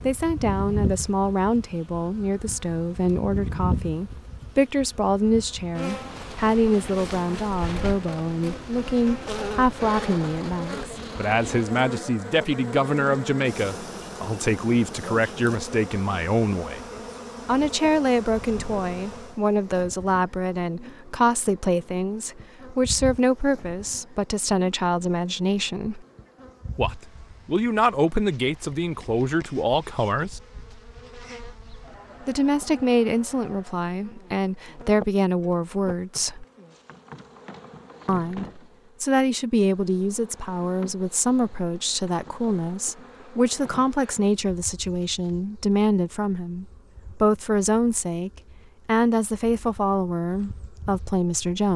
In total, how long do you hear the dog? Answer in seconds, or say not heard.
not heard.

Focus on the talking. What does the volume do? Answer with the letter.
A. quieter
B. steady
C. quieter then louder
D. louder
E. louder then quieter
B.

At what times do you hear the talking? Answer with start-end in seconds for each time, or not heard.
0.0-16.8, 17.4-26.1, 26.8-30.4, 32.2-36.5, 38.0-51.7.